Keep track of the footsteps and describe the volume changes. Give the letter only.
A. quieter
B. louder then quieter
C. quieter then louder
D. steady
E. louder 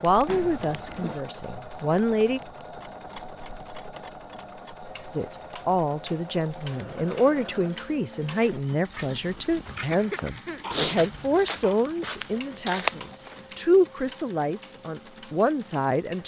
E.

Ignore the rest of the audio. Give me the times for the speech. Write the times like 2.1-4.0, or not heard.
0.0-2.4, 5.2-16.2.